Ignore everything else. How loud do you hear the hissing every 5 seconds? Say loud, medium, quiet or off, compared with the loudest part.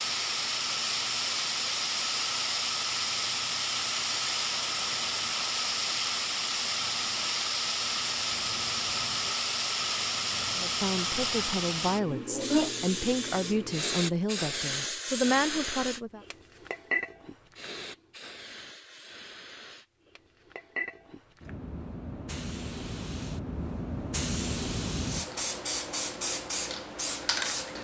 loud, loud, loud, medium, medium, loud.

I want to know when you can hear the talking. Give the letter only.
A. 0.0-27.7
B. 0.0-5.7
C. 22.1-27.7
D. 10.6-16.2
D.